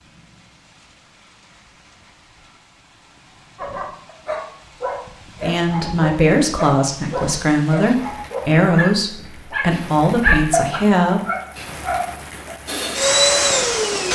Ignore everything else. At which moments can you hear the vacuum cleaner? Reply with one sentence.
You can hear the vacuum cleaner from 12.7 to 14.1 s.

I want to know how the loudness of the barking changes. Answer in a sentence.
The volume of the barking goes up.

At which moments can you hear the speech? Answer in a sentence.
You can hear the speech from 5.4 to 11.2 s.